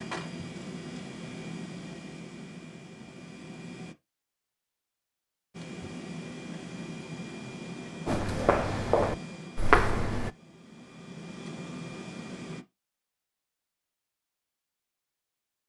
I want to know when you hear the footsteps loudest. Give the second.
10 s.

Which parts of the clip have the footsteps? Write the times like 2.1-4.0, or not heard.
8.1-10.3.